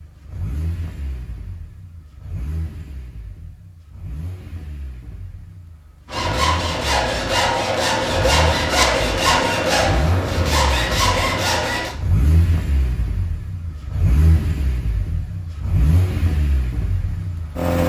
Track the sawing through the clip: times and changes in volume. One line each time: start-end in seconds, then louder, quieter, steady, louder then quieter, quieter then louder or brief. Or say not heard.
6.0-11.9 steady.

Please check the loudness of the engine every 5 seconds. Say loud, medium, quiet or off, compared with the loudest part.
quiet, medium, loud, loud.